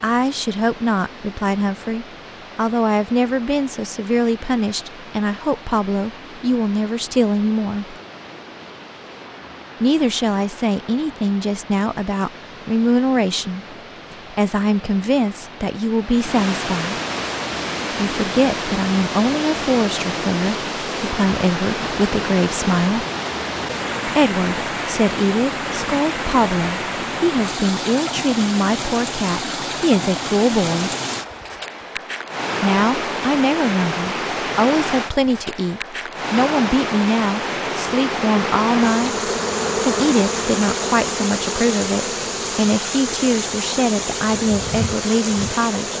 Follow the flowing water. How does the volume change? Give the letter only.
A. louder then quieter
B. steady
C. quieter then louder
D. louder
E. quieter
D.